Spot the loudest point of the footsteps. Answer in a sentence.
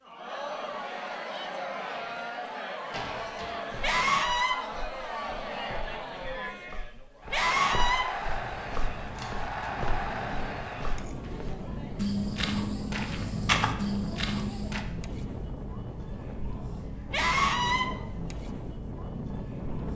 The loudest moment of the footsteps is at 14 seconds.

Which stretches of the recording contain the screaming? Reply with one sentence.
The screaming can be heard from 3.8 to 4.5 s, from 7.3 to 8.1 s and from 17.1 to 17.9 s.